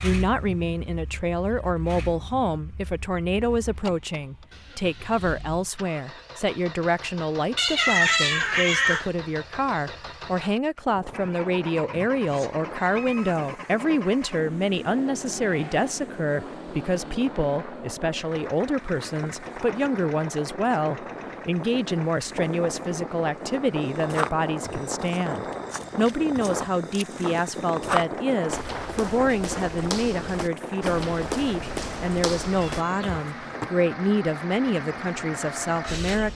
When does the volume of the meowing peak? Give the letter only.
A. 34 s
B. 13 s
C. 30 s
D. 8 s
D.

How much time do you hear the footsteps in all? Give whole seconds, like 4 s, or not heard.
10 s.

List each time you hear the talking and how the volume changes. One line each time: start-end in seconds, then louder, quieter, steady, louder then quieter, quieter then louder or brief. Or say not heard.
0.0-36.2 steady.